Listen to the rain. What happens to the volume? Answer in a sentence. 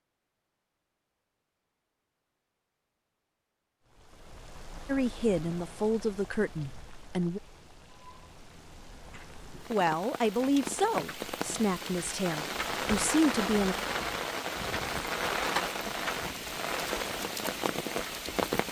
The loudness of the rain goes up.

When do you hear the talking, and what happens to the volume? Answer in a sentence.
You can hear the talking briefly from 4.8 to 7.4 s; and from 9.2 to 13.8 s, getting quieter then louder.